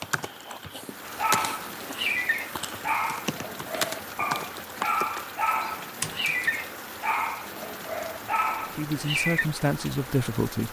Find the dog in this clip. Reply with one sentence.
The dog can be heard from 1.0 to 9.4 s.